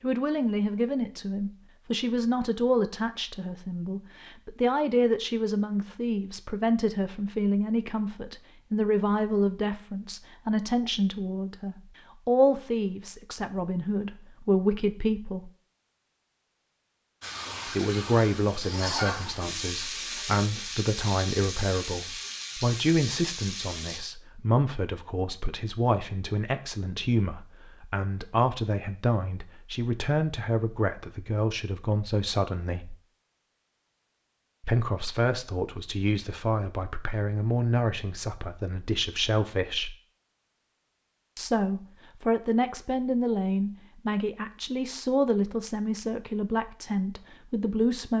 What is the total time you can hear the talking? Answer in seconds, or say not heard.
43 s.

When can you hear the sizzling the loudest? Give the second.
19 s.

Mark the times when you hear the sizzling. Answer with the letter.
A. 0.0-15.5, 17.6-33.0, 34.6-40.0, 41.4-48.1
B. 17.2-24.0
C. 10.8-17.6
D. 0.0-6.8
B.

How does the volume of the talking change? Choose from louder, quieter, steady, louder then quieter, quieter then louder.
steady.